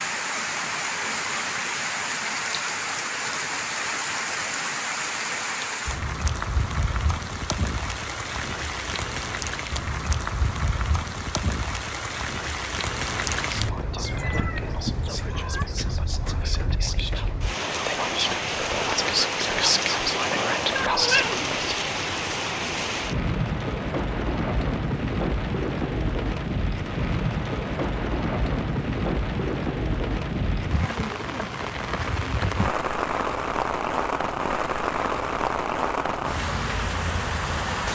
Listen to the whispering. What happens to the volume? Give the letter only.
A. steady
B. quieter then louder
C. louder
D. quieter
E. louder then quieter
C.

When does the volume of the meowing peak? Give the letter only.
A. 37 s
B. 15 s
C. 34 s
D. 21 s
D.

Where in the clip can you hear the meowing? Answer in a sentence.
You can hear the meowing from 14.1 to 15.7 s and from 20.8 to 21.6 s.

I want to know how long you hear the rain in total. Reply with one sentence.
The rain can be heard for 38 seconds in total.